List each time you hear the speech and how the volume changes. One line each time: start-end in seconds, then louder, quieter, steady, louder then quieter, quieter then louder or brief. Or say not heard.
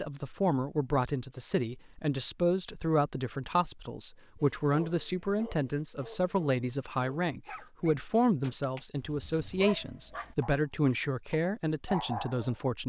0.0-12.8 steady.